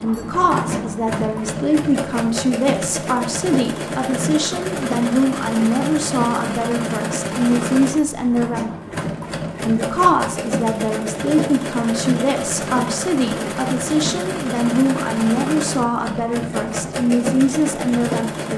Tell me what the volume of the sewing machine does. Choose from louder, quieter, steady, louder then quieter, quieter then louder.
steady.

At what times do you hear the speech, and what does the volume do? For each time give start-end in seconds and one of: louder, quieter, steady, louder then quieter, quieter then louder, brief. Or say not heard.
0.0-8.7 steady
9.6-18.5 steady.